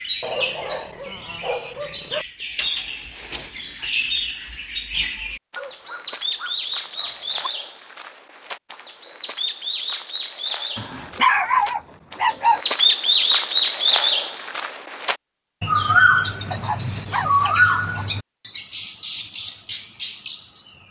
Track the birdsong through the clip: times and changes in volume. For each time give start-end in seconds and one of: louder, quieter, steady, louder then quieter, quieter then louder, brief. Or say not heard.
0.0-20.8 louder.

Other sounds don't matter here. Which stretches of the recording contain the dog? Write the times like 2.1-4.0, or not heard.
0.2-2.2, 5.5-7.5, 10.8-12.7, 16.5-18.1.